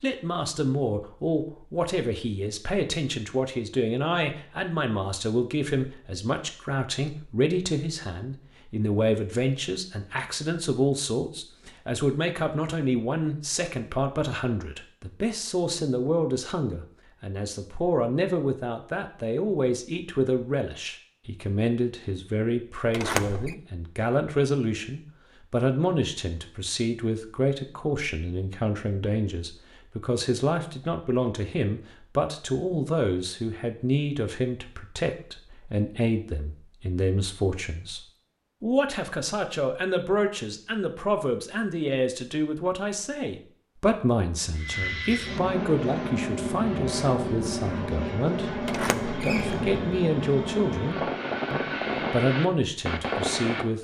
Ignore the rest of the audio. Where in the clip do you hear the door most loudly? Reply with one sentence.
The loudest moment of the door is at 23 seconds.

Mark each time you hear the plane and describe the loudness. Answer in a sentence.
You can hear the plane from 44.5 to 53.6 s, at a steady volume.